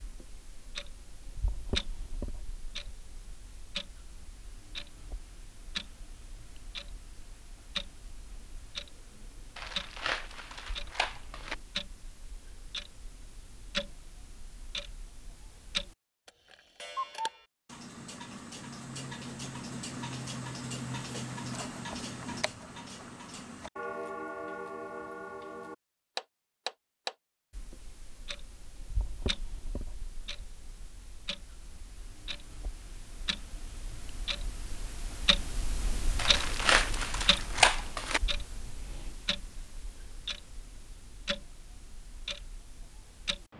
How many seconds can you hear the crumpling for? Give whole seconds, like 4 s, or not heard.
4 s.